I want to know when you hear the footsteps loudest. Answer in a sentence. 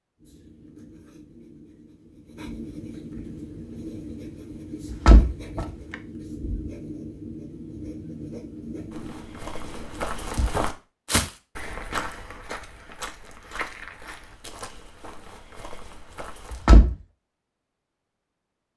The loudest moment of the footsteps is at 11 seconds.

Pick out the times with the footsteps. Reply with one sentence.
You can hear the footsteps from 8.9 to 16.6 s.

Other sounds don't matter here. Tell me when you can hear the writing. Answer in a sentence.
You can hear the writing from 0.1 to 10.7 s.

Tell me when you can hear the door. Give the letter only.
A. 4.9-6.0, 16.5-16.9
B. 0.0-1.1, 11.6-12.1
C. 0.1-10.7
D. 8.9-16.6
A.